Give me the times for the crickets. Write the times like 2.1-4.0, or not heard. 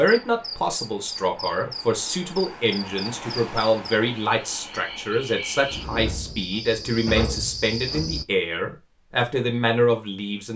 0.0-8.2.